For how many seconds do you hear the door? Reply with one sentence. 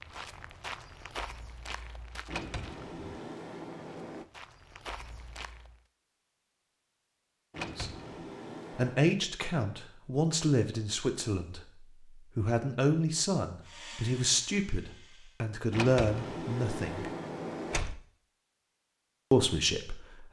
You can hear the door for 6 seconds altogether.